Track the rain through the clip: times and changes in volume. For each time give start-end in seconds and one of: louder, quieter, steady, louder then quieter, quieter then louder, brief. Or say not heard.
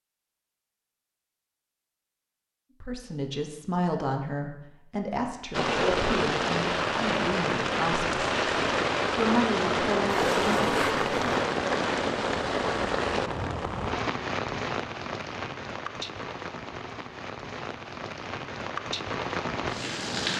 5.5-20.3 quieter.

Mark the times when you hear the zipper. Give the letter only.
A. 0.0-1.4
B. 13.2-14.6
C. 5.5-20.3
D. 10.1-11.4
D.